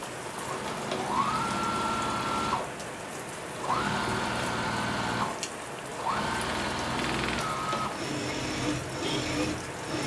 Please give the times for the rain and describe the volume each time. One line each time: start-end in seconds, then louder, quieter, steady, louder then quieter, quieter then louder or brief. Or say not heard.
0.0-10.0 steady.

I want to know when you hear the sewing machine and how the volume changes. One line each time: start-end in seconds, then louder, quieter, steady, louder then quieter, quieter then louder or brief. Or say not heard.
0.0-10.0 steady.